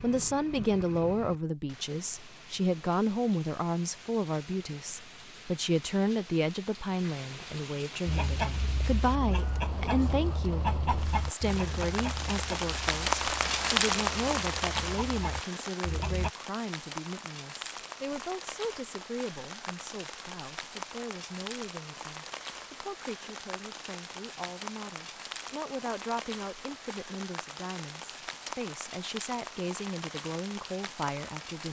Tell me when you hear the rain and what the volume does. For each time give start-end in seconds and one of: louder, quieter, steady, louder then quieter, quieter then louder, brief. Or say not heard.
0.0-31.6 louder then quieter.